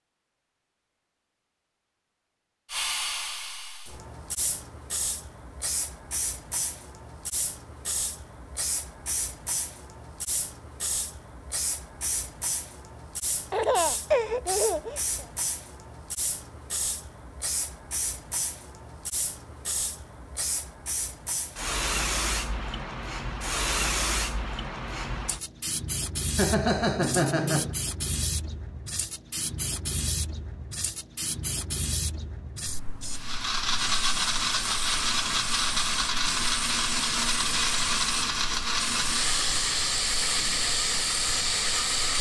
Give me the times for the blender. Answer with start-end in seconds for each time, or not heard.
33.1-42.1.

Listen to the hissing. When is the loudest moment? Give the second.
24 s.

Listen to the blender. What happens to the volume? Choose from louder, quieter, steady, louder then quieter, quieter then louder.
steady.